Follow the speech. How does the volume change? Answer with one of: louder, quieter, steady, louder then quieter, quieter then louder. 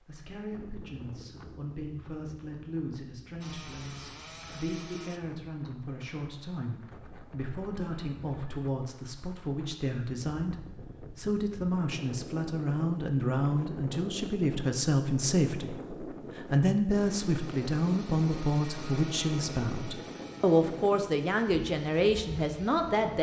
louder.